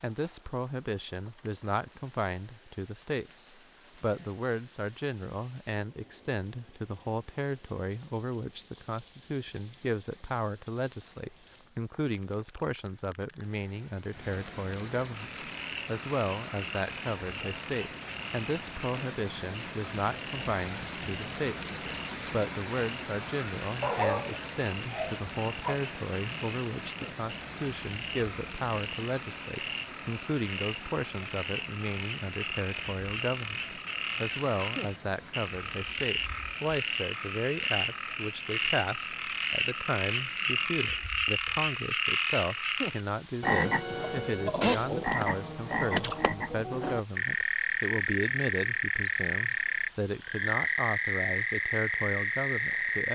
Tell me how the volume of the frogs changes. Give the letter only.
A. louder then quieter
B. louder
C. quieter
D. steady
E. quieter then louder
B.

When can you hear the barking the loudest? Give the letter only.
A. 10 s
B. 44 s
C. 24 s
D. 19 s
C.